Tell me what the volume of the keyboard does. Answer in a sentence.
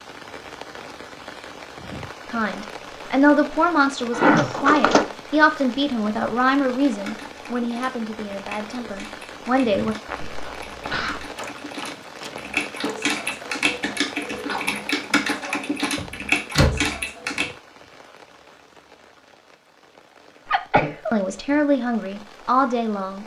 The volume of the keyboard goes up.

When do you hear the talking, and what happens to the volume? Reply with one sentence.
The talking can be heard from 2.3 to 9.9 s, getting quieter; and briefly from 21.1 to 23.2 s.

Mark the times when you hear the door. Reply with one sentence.
The door can be heard from 4.2 to 5.1 s, from 11.3 to 13.4 s and from 15.9 to 17.0 s.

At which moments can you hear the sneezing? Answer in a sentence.
You can hear the sneezing from 4.1 to 5.0 s, from 10.1 to 11.2 s and from 20.4 to 21.1 s.